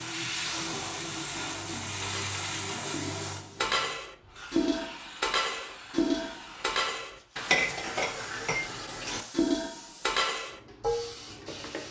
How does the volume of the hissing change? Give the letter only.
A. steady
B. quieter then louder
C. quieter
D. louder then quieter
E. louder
C.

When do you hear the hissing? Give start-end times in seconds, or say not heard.
0.0-11.8.